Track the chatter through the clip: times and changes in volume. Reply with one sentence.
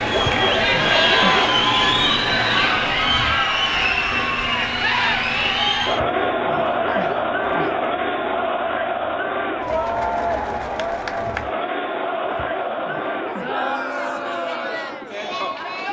You can hear the chatter from 0.0 to 15.8 s, getting quieter.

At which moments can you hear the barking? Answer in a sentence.
You can hear the barking from 0.1 to 1.6 s, from 5.8 to 7.9 s and from 12.2 to 13.8 s.